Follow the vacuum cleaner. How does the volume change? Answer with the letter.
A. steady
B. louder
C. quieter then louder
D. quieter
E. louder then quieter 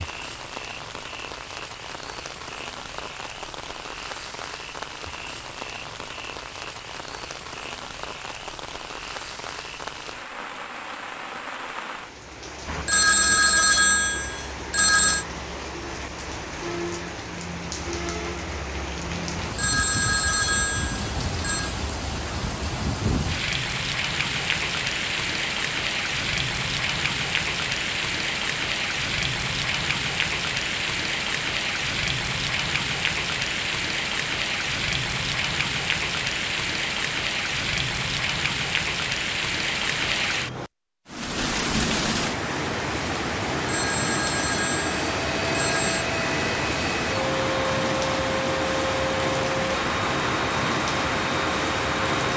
A.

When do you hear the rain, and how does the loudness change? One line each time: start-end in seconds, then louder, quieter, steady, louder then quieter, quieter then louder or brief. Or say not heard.
0.0-52.3 louder.